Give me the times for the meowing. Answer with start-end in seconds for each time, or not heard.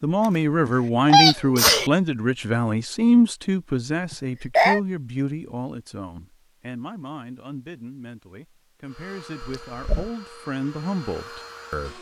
not heard.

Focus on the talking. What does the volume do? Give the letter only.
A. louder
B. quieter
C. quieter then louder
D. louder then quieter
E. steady
C.